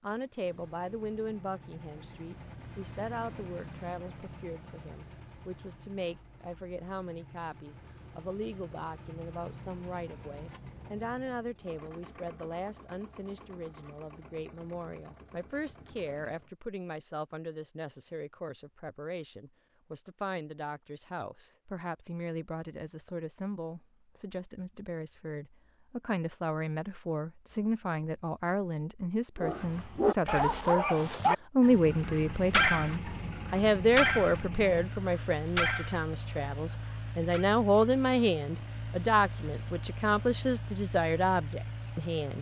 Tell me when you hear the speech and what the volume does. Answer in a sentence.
You can hear the speech from 0.0 to 42.3 s, getting louder.